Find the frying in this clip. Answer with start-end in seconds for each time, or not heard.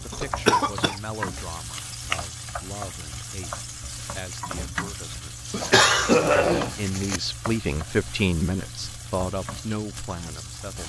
0.0-10.8.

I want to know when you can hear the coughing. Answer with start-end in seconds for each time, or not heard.
0.1-0.9, 5.5-7.2.